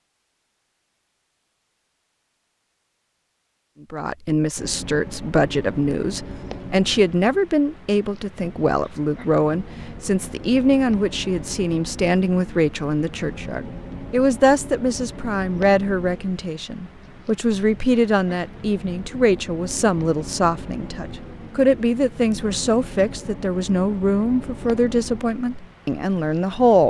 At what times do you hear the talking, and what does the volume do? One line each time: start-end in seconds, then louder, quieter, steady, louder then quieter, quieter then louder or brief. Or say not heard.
3.9-26.8 steady.